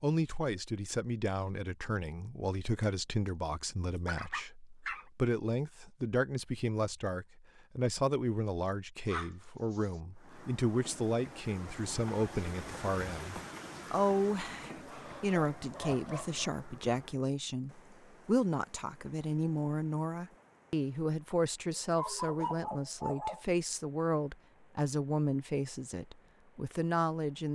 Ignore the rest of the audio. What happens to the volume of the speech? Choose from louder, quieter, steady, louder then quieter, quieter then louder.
steady.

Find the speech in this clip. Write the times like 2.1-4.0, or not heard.
0.0-27.5.